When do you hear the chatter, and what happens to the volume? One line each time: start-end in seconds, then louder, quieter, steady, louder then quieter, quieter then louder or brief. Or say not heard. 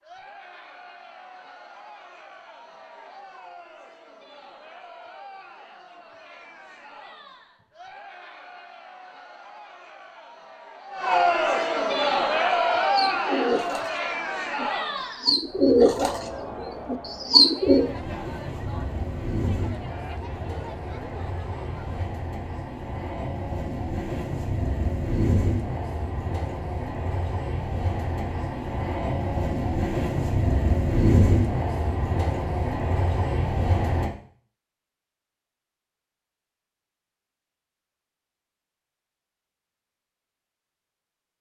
0.0-22.1 louder then quieter.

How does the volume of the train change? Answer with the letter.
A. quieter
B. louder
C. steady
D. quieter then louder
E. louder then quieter
B.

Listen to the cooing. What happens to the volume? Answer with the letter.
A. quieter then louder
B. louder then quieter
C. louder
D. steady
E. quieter
A.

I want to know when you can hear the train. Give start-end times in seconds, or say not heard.
17.6-34.1.